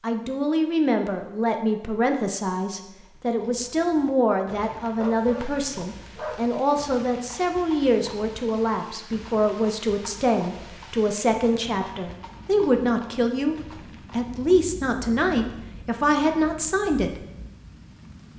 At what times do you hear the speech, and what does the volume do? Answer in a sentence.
The speech can be heard from 0.0 to 17.2 s, at a steady volume.